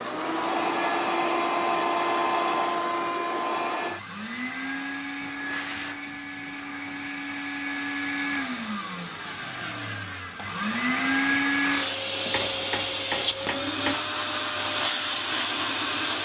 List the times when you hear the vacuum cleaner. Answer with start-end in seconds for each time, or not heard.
0.0-16.1.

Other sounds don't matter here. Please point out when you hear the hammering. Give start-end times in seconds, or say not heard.
11.6-14.0.